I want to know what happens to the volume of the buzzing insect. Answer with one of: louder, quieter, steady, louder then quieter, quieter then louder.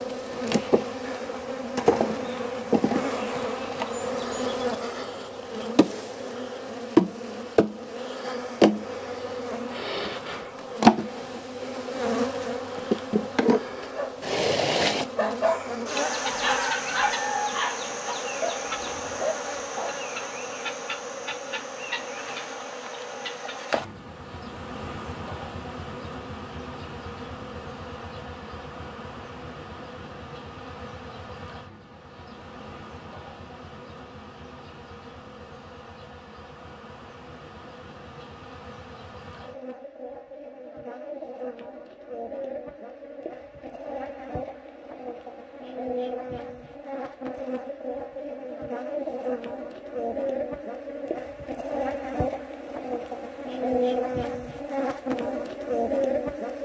quieter then louder.